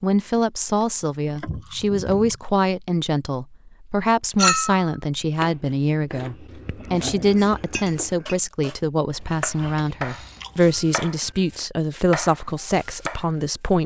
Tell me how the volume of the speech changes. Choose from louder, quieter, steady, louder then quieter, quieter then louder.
steady.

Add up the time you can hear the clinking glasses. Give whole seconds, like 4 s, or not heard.
2 s.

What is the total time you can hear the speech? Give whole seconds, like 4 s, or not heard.
14 s.